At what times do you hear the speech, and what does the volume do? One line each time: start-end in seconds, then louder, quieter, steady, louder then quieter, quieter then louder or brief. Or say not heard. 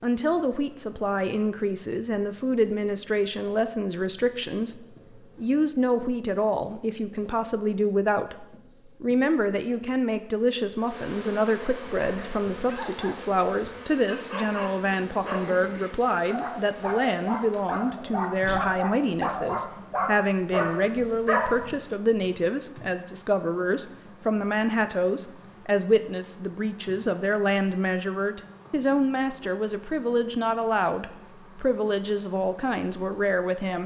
0.0-33.8 steady.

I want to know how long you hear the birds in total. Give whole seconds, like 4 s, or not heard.
not heard.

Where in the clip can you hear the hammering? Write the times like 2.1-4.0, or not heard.
not heard.